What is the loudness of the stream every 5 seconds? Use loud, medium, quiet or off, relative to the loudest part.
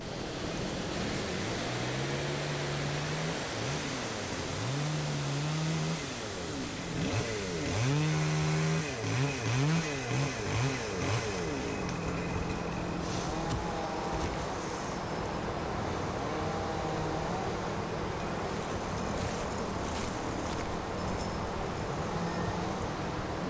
loud, medium, loud, loud, loud.